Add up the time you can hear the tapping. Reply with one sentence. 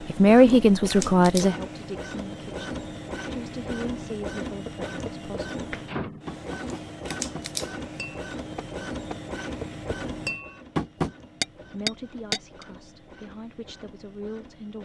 The tapping can be heard for 8 seconds in total.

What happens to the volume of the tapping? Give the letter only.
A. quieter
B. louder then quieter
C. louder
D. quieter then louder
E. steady
C.